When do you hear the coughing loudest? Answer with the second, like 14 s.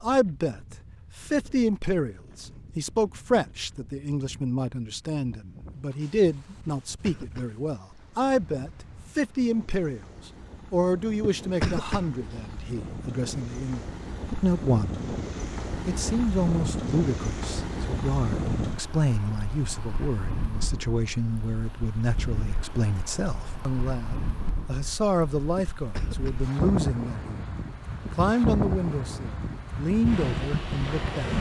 12 s.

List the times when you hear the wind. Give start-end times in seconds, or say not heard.
0.0-31.3.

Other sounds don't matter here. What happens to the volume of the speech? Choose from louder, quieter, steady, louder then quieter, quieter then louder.
steady.